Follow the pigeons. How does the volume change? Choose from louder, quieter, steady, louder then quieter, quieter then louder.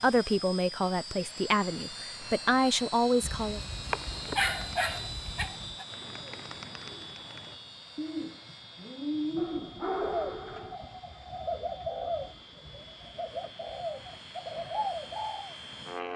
louder.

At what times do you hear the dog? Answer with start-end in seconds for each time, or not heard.
3.2-5.8, 9.3-10.8.